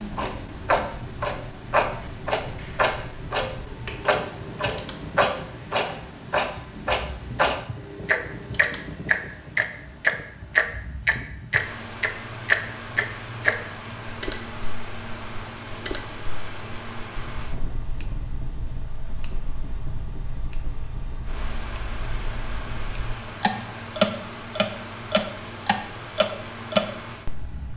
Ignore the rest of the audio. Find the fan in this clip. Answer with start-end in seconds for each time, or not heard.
0.0-27.7.